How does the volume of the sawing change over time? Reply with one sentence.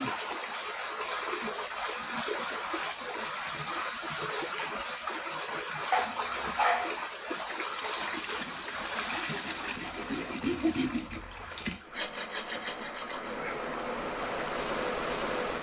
The loudness of the sawing goes up, then down.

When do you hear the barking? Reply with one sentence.
You can hear the barking from 5.9 to 7.0 s.